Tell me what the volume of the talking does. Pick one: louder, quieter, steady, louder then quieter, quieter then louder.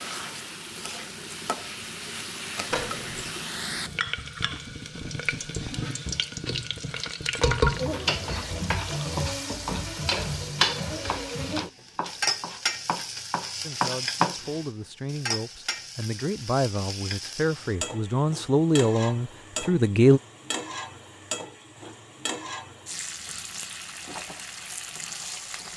louder.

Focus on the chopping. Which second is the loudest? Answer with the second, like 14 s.
14 s.